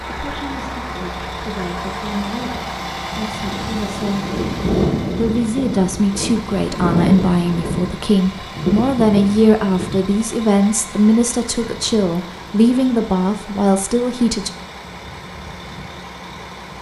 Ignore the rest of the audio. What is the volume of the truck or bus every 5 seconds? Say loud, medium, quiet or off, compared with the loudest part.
loud, loud, medium, medium.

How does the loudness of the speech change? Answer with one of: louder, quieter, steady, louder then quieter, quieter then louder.
louder.